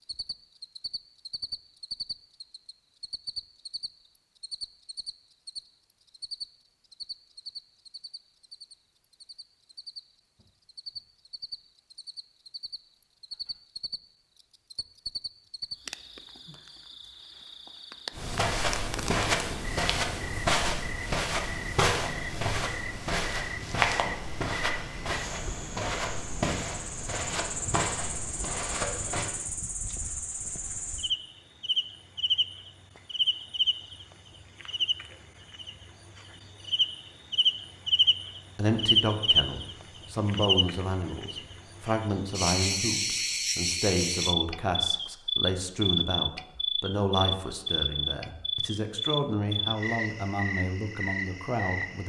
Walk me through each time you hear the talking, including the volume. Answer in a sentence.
You can hear the talking from 38.5 to 52.0 s, at a steady volume.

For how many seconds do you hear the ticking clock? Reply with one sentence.
The ticking clock can't be heard in this clip.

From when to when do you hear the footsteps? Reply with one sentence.
The footsteps can be heard from 18.1 to 29.3 s.